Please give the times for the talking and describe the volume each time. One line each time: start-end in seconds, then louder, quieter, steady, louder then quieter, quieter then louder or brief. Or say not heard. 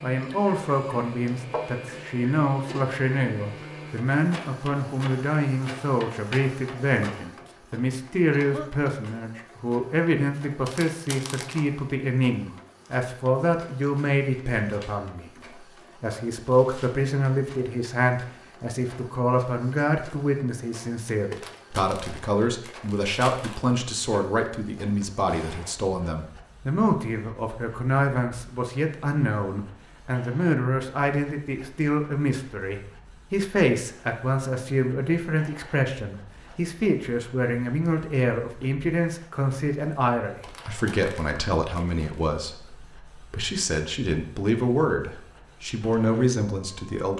0.0-47.1 steady.